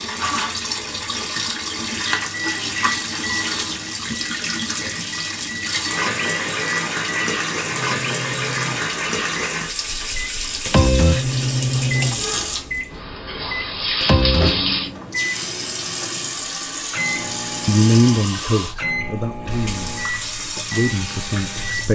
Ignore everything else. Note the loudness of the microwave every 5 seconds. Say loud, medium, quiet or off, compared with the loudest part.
medium, medium, loud, medium, medium.